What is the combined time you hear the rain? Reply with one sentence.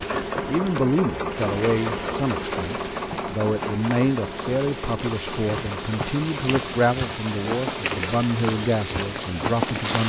The rain can be heard for 10 seconds in total.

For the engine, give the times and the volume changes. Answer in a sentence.
You can hear the engine from 0.0 to 10.0 s, getting quieter.